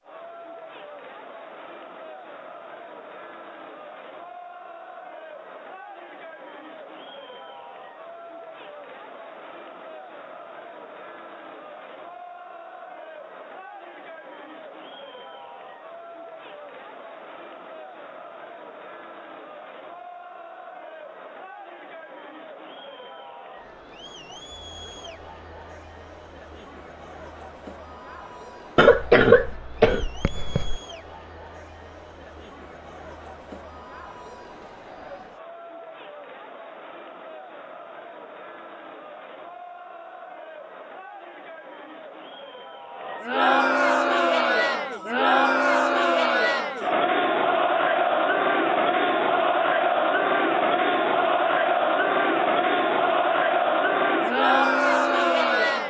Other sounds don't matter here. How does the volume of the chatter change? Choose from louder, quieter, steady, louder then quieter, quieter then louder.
louder.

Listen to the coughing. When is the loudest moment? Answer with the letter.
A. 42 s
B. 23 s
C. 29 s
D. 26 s
C.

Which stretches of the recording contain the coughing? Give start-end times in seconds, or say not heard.
28.8-30.8.